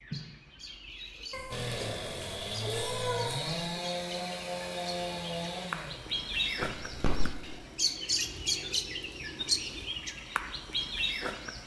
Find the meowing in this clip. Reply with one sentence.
You can hear the meowing from 1.3 to 3.5 s and from 6.6 to 7.3 s.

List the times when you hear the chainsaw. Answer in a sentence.
The chainsaw can be heard from 1.5 to 9.8 s.